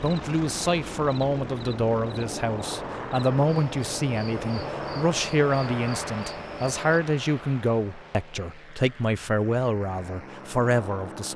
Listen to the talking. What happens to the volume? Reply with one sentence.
The loudness of the talking stays about the same.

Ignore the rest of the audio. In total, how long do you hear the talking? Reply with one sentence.
The talking can be heard for 11 seconds in total.